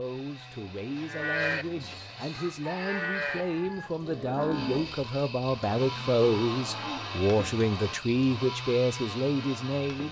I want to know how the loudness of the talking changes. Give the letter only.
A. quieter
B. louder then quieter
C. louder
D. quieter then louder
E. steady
C.